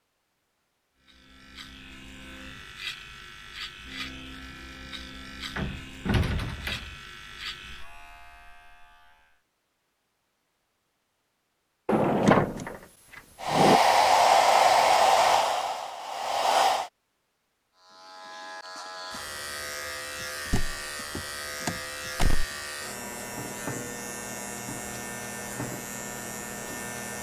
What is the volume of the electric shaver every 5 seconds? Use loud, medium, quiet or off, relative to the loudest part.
medium, medium, off, loud, loud, loud.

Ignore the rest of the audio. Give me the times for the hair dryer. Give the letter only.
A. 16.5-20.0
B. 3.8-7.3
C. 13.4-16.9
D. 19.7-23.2
C.